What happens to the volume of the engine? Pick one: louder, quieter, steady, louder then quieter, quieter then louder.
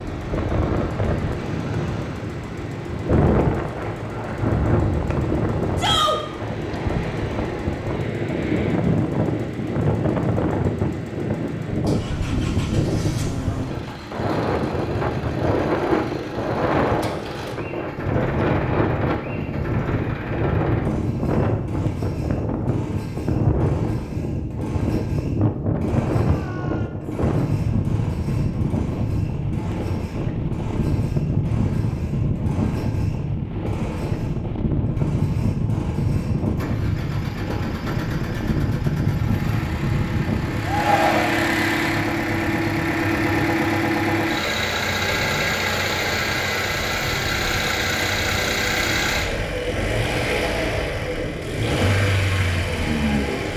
louder.